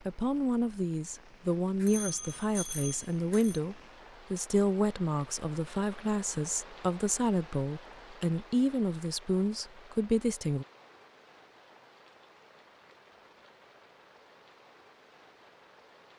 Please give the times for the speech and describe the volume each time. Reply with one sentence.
The speech can be heard from 0.1 to 10.7 s, at a steady volume.